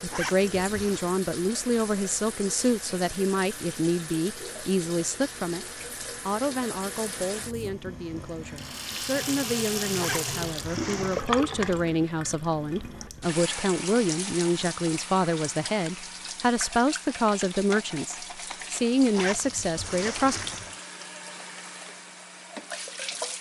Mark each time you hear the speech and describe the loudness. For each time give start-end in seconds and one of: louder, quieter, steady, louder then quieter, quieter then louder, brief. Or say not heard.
0.0-5.7 steady
6.2-20.4 louder.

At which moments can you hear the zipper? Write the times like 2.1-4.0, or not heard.
0.1-1.1, 9.9-11.2, 19.1-20.8.